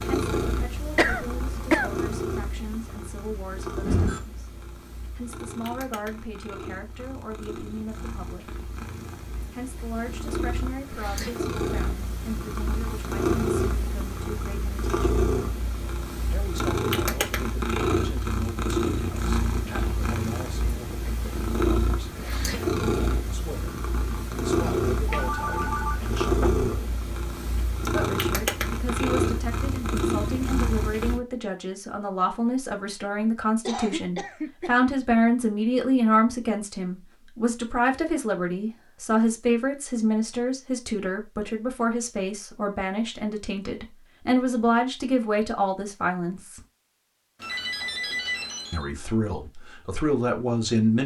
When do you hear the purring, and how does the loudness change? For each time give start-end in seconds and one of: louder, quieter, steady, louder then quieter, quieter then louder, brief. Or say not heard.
0.0-31.2 louder.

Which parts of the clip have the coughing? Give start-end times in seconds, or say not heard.
0.9-1.9, 33.6-34.9.